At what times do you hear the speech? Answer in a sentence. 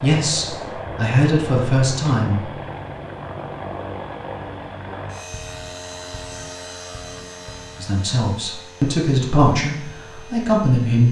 The speech can be heard from 0.0 to 2.5 s and from 7.8 to 11.0 s.